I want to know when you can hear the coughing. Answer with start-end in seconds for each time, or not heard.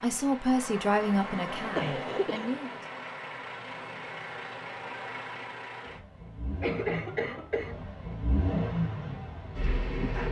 1.8-2.5, 6.6-7.8.